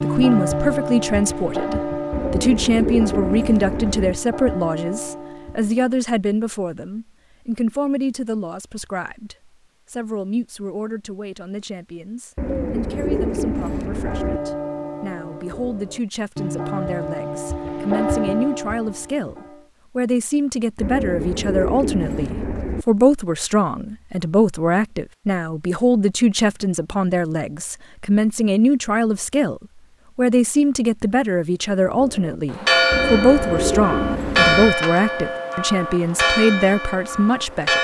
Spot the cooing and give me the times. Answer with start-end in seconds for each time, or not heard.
2.1-4.2, 12.3-14.4, 20.8-22.9, 32.9-34.8.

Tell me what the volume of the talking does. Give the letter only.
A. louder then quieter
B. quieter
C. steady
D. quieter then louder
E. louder
D.